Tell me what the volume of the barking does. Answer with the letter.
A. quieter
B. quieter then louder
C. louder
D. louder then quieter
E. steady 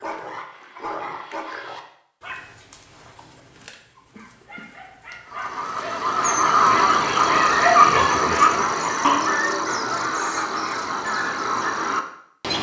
B.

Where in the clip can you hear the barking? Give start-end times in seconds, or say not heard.
0.0-9.8.